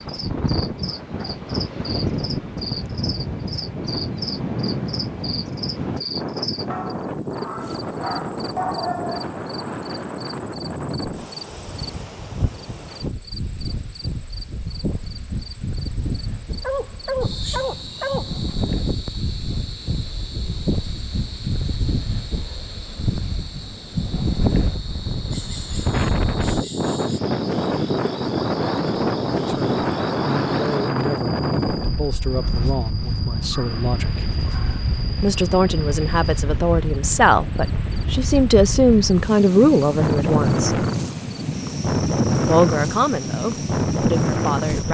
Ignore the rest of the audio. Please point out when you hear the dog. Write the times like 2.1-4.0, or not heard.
6.7-9.3, 16.6-18.6, 33.5-34.9.